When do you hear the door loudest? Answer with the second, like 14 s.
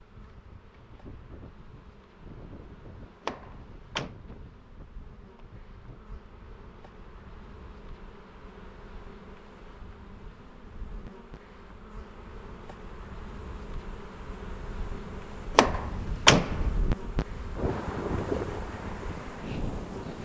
16 s.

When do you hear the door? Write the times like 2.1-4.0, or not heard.
3.2-4.2, 15.6-16.7.